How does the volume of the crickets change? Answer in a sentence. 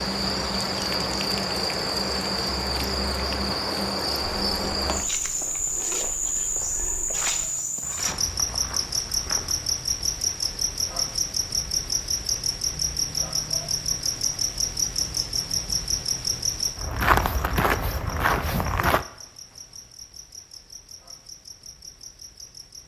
The loudness of the crickets goes down.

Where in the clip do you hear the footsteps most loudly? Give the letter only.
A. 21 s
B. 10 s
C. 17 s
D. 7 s
C.